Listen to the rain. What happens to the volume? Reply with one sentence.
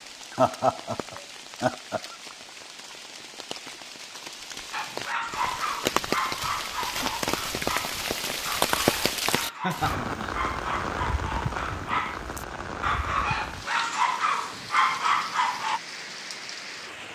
The loudness of the rain goes up, then down.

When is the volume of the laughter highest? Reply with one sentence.
The volume of the laughter peaks at 1 second.